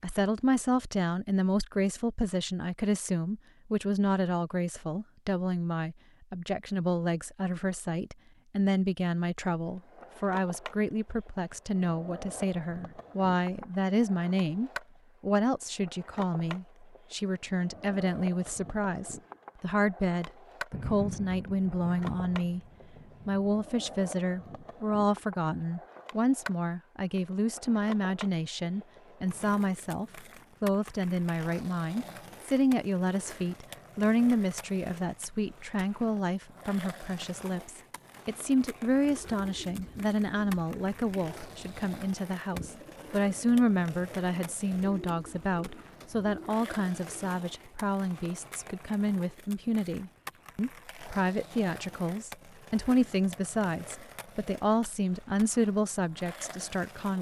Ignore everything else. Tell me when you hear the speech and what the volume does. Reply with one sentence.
You can hear the speech from 0.0 to 22.6 s, at a steady volume; and from 23.2 to 57.1 s, at a steady volume.